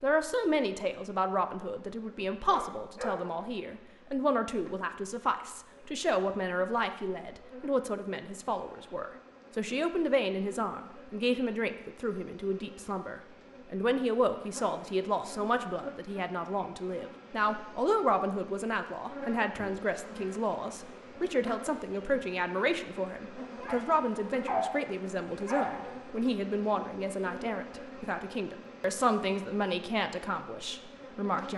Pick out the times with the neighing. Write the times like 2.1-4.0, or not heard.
not heard.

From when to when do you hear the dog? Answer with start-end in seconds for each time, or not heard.
2.5-3.2, 23.4-25.9.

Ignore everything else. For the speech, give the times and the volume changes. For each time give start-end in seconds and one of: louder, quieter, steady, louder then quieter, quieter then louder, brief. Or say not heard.
0.0-31.5 steady.